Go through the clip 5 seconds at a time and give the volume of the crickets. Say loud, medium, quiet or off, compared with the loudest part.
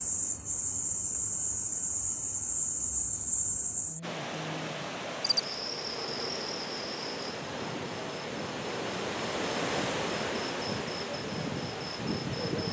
loud, medium, medium.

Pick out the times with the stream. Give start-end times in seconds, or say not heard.
4.0-12.6.